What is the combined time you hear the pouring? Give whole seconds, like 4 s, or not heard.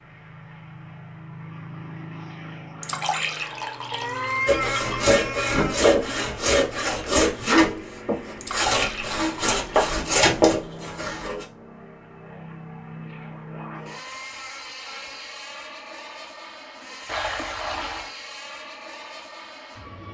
5 s.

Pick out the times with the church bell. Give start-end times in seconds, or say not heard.
not heard.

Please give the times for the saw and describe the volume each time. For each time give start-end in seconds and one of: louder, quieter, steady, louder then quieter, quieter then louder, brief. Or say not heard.
4.5-11.4 steady.